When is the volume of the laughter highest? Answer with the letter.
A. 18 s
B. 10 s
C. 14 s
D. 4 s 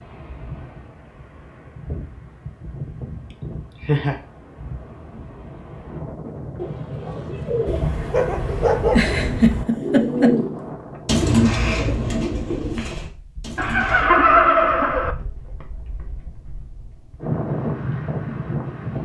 C.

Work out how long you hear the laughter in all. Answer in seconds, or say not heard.
4 s.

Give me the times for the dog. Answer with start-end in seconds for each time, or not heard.
7.7-9.7.